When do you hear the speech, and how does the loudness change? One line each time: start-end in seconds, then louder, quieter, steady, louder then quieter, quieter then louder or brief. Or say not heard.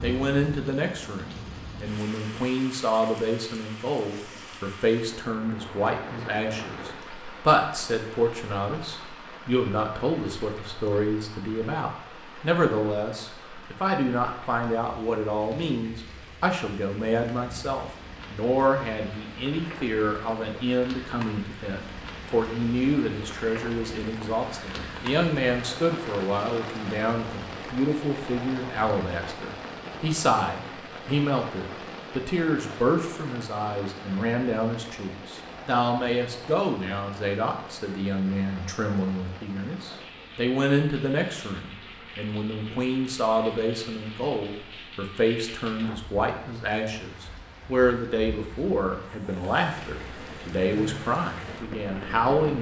0.0-52.5 steady.